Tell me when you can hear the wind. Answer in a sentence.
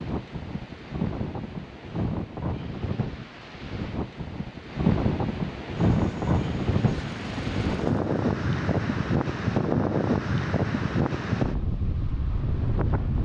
You can hear the wind from 0.0 to 13.2 s.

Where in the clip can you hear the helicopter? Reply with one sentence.
The helicopter can be heard from 5.8 to 8.9 s.